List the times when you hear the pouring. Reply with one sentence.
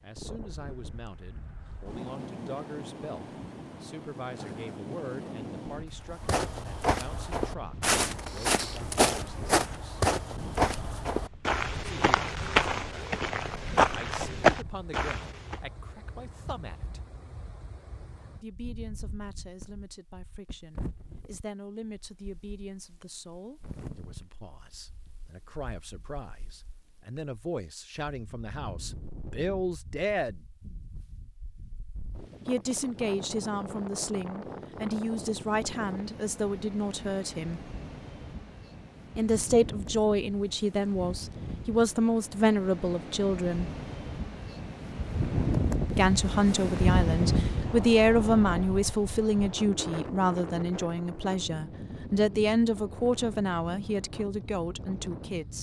The pouring can't be heard in this clip.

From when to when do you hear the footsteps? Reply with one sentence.
The footsteps can be heard from 6.1 to 15.6 s.